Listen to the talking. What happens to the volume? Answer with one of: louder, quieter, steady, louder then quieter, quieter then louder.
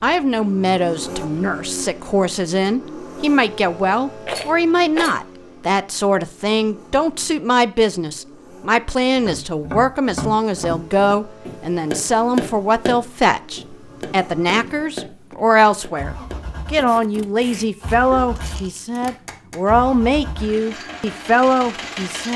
steady.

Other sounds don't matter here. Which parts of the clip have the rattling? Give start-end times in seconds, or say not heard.
4.2-5.2, 18.4-19.0.